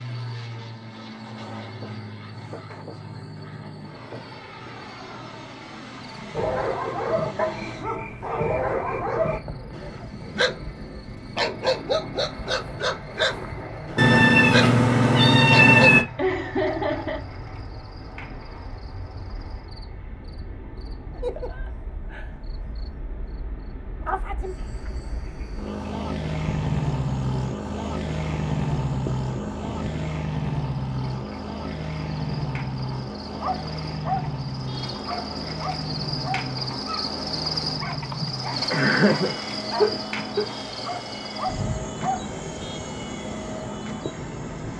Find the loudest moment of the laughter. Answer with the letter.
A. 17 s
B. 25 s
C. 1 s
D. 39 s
D.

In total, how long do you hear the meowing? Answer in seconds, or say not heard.
2 s.